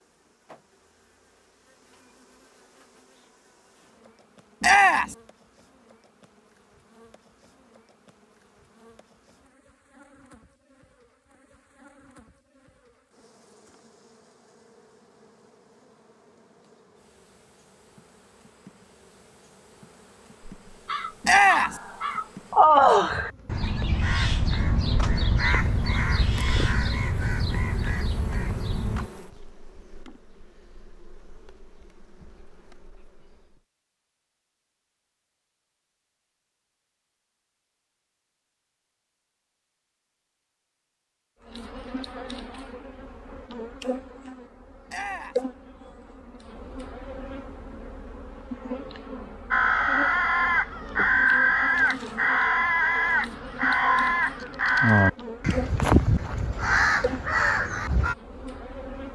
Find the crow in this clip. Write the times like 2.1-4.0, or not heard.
20.7-29.1, 49.5-58.1.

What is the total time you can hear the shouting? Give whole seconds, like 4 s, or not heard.
2 s.